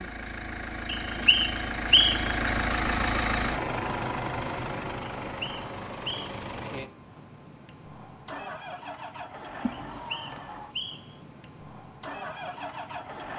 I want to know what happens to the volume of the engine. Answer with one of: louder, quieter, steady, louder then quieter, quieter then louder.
quieter.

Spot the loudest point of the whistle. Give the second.
2 s.